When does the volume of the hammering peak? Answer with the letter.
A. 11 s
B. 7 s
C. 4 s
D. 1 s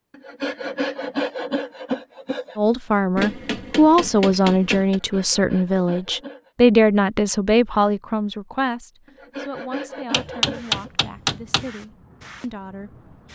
A.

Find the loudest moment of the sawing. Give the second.
1 s.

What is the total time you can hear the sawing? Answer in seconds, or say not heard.
6 s.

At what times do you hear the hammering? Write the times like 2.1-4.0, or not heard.
3.1-5.0, 10.1-11.7.